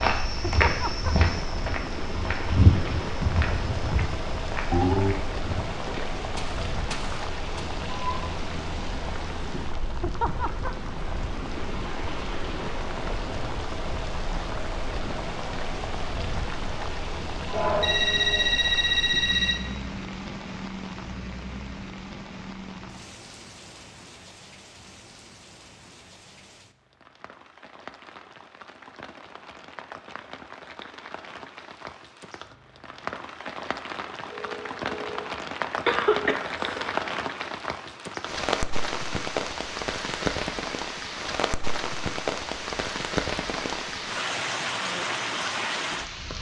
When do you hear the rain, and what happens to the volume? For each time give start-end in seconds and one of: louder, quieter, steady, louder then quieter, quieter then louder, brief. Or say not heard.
0.0-46.3 quieter then louder.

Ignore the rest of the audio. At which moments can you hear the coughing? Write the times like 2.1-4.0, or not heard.
35.9-37.0.